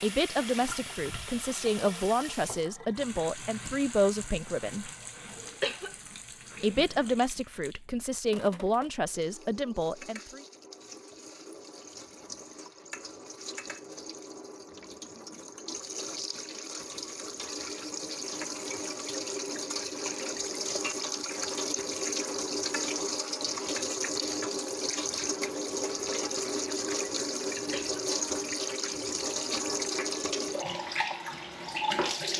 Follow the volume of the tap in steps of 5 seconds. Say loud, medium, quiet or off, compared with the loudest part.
medium, quiet, quiet, medium, loud, loud, loud.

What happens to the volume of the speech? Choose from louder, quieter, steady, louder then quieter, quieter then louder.
steady.